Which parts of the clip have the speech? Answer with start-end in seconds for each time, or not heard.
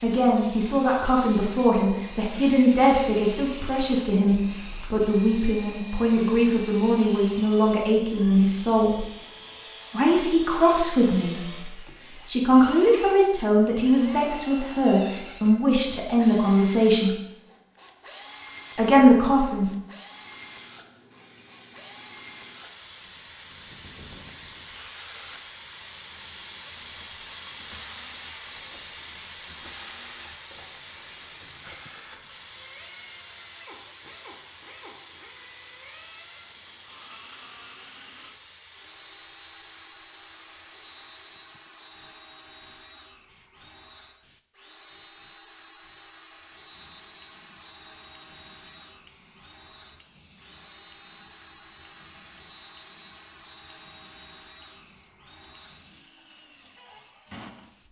0.0-9.1, 9.9-17.1, 18.8-19.6.